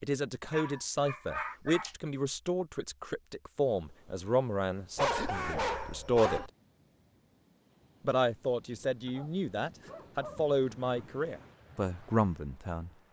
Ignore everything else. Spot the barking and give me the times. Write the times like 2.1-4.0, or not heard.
0.5-1.9, 5.0-6.5, 9.1-11.1.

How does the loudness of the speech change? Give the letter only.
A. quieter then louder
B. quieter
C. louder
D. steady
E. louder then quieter
D.